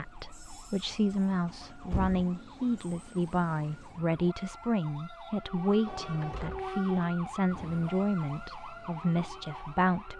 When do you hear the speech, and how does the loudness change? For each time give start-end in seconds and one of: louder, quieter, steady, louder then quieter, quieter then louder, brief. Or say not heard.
0.0-10.1 steady.